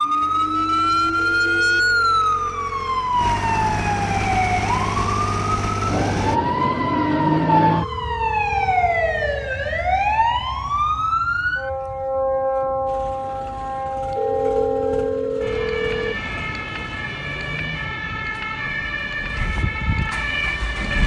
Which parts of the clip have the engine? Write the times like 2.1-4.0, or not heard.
0.0-6.4, 12.8-21.0.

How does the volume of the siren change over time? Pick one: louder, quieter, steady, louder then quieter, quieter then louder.
quieter.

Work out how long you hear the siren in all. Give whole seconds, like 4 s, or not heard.
21 s.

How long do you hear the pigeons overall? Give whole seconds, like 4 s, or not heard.
not heard.